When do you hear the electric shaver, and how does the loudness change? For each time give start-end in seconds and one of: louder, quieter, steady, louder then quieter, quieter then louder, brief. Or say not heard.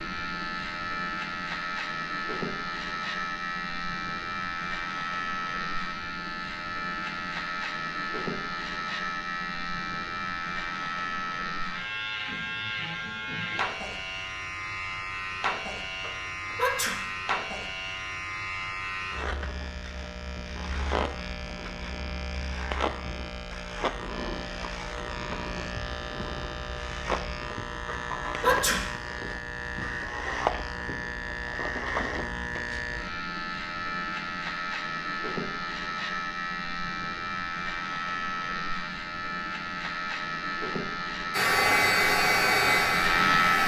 0.0-43.6 steady.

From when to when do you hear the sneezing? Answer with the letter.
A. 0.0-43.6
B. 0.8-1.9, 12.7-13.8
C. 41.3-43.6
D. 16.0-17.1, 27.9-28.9
D.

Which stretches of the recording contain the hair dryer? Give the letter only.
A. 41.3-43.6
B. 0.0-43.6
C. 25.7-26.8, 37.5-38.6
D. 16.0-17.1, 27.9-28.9
A.